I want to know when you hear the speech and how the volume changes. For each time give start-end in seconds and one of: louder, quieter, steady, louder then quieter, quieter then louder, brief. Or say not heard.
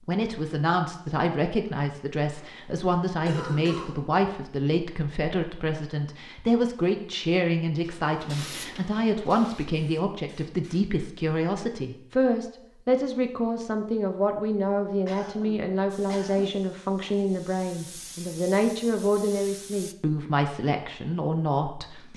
0.1-22.1 steady.